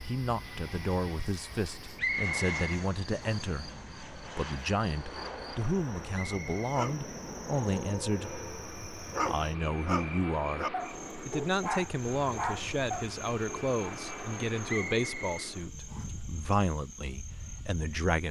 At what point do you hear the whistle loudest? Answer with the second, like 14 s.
2 s.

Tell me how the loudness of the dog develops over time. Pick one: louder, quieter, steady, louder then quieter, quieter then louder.
louder.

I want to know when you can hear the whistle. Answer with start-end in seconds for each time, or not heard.
1.9-3.4, 6.1-6.9, 14.7-16.1.